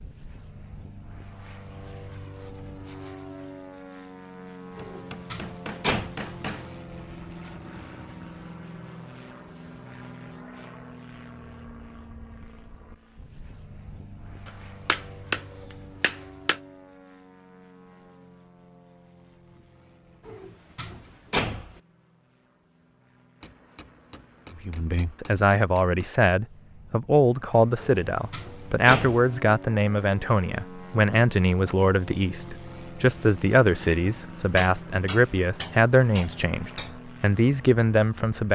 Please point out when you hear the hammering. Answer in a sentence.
You can hear the hammering from 4.9 to 6.8 s, from 14.4 to 16.6 s, from 23.4 to 26.1 s and from 34.5 to 37.0 s.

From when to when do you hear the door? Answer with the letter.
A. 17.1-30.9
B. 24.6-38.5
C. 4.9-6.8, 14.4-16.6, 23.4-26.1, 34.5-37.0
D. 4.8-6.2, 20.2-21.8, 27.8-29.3
D.